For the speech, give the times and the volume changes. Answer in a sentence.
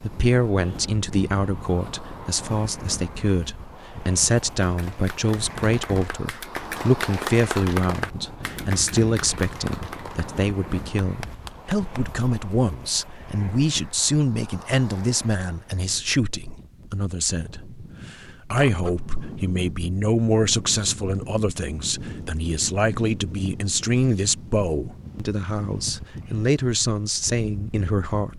The speech can be heard from 0.0 to 28.3 s, at a steady volume.